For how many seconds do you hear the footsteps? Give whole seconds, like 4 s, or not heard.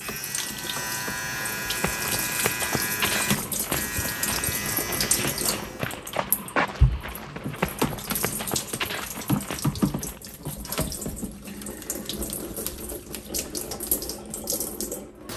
9 s.